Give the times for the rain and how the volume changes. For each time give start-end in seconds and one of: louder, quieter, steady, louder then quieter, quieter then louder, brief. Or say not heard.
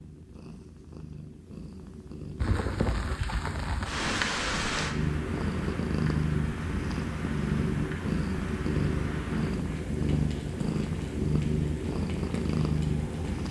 2.4-13.4 quieter.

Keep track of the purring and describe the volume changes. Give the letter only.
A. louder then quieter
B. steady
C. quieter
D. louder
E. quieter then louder
D.